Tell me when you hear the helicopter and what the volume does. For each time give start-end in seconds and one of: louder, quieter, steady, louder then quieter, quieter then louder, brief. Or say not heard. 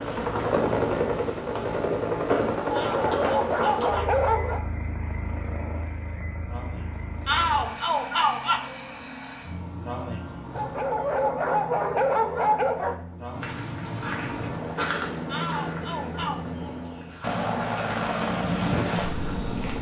0.0-19.7 quieter then louder.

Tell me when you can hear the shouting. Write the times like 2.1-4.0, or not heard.
2.7-4.3, 7.2-8.6, 15.2-16.4.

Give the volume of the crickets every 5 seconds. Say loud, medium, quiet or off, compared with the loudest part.
medium, loud, loud, medium.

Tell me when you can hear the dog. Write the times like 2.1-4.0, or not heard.
2.8-4.6, 10.6-13.0.